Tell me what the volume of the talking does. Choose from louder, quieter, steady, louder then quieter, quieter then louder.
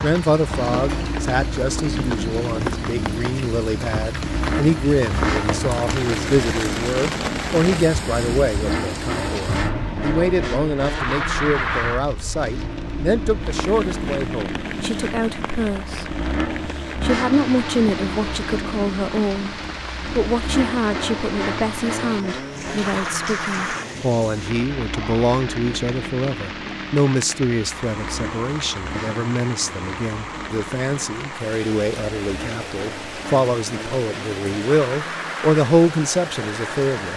steady.